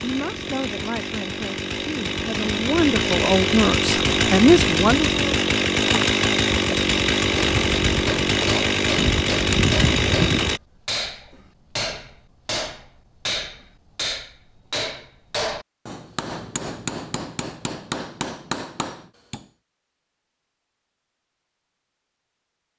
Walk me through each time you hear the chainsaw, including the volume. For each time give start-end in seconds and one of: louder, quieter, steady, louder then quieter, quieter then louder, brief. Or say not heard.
0.0-10.6 louder.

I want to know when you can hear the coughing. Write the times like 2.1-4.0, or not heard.
not heard.